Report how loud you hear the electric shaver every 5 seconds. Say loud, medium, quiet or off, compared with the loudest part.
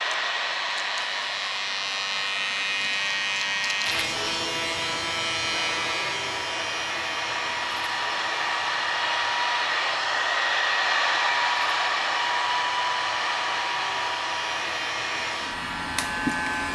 loud, loud, medium, loud.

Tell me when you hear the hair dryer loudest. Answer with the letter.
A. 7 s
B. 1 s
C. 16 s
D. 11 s
D.